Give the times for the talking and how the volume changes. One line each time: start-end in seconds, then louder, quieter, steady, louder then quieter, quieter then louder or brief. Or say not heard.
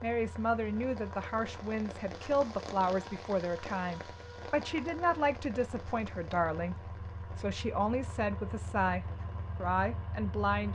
0.0-10.6 steady.